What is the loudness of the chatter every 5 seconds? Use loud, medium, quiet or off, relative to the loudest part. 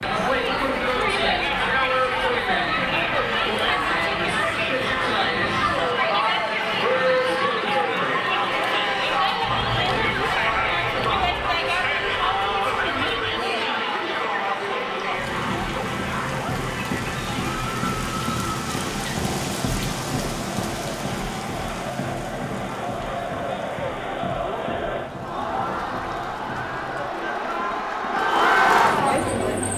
loud, loud, loud, medium, medium, loud.